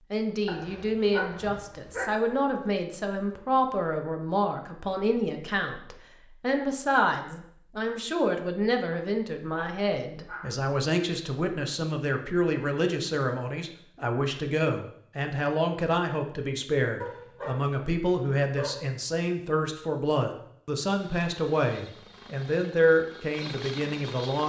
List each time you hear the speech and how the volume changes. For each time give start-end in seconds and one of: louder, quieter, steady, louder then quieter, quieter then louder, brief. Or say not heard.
0.1-24.4 steady.